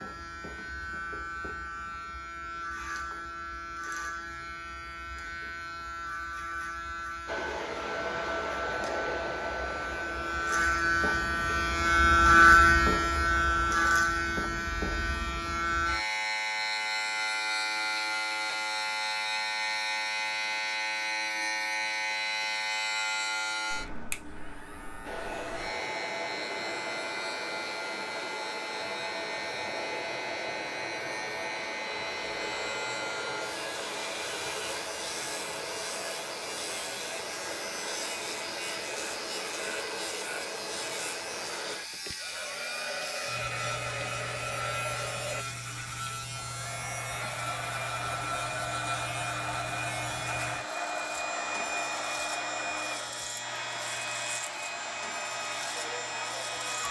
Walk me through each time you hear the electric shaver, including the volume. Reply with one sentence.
You can hear the electric shaver from 0.0 to 56.8 s, getting louder then quieter.